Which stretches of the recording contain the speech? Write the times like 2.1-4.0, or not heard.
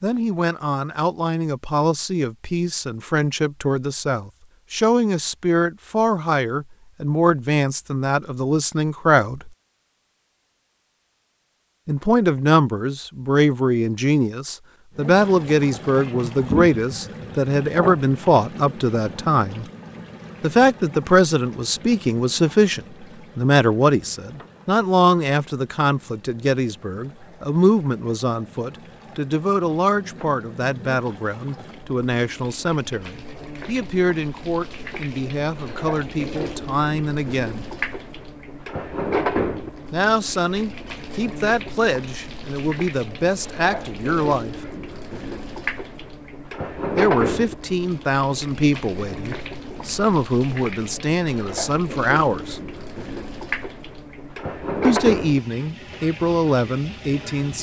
0.0-9.5, 11.8-19.6, 20.4-37.6, 39.9-44.5, 47.0-52.6, 54.9-57.5.